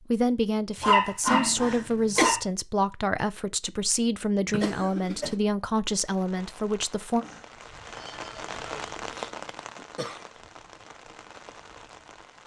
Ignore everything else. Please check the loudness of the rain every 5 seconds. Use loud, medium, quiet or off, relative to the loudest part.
off, loud, medium.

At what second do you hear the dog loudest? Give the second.
1 s.